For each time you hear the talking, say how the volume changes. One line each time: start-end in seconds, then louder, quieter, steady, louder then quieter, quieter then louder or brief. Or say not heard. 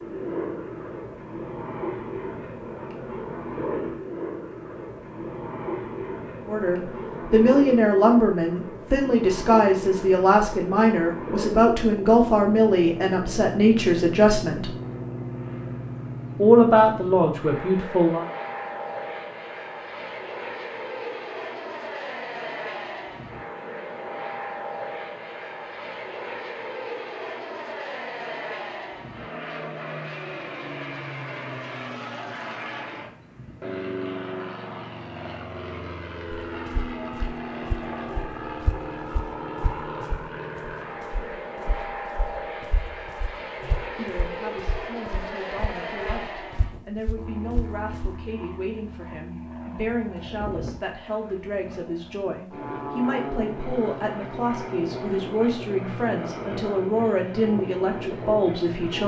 6.5-14.7 steady
16.4-18.2 brief
44.0-59.0 louder.